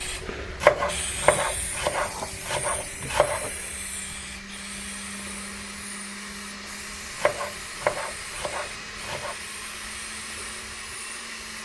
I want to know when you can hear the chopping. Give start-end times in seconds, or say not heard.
0.6-3.5, 7.2-9.3.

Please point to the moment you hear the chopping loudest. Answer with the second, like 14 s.
1 s.